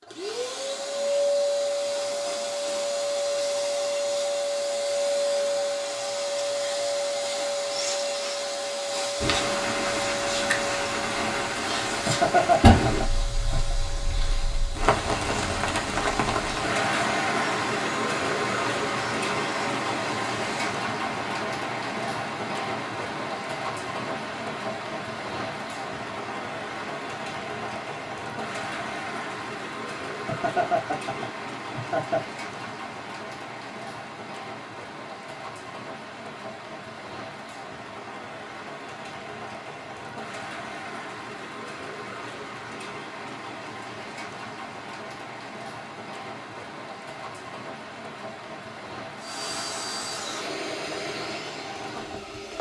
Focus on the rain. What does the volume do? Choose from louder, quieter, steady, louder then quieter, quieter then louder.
quieter.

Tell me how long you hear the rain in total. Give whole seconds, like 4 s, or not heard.
43 s.